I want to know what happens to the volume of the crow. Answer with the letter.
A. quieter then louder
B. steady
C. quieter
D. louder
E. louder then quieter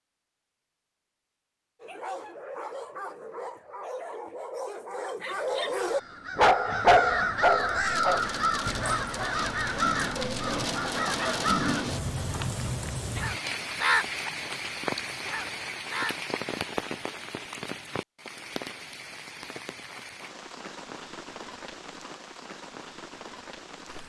A.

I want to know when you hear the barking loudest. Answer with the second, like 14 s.
7 s.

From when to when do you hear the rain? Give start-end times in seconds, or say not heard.
7.7-24.0.